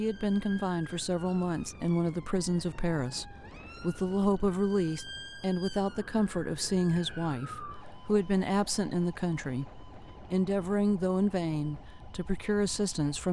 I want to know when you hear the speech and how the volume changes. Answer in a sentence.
The speech can be heard from 0.0 to 13.2 s, at a steady volume.